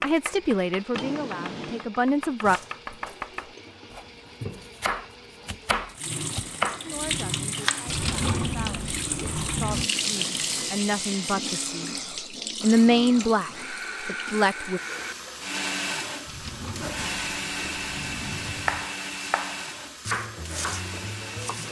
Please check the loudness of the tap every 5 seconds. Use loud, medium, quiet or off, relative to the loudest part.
medium, loud, loud, medium, medium.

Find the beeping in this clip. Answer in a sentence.
The beeping can't be heard in this clip.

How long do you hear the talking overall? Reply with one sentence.
The talking can be heard for 10 seconds in total.